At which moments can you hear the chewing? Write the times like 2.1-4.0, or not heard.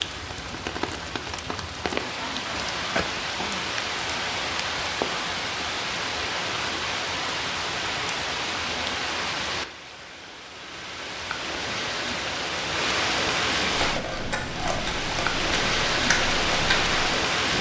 13.7-17.5.